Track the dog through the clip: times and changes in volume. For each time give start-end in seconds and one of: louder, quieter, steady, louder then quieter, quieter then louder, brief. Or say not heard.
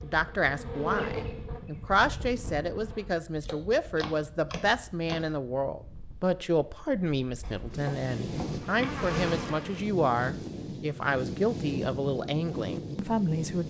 not heard.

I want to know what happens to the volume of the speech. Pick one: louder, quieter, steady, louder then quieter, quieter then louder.
steady.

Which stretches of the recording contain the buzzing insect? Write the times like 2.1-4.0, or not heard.
0.0-3.1, 8.4-9.9.